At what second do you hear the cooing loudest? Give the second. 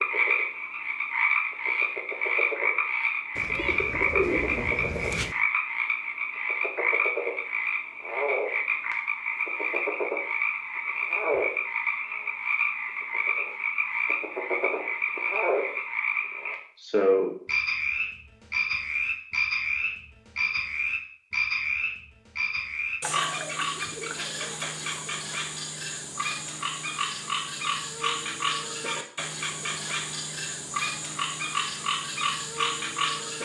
4 s.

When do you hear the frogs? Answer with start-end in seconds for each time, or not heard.
0.0-33.4.